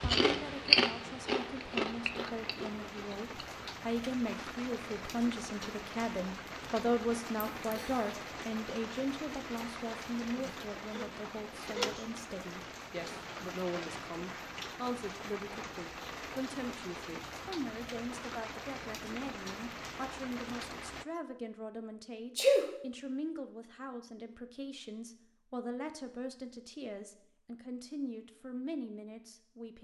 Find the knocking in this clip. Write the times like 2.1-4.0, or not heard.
not heard.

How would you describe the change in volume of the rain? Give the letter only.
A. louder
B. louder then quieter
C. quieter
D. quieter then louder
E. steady
E.